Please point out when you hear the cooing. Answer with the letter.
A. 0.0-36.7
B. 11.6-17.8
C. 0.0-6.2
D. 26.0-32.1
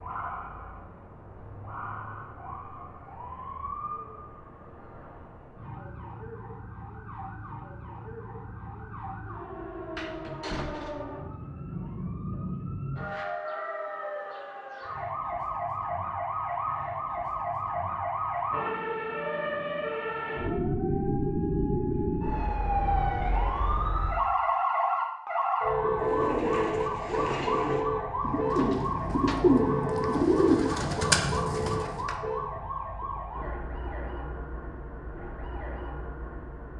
D.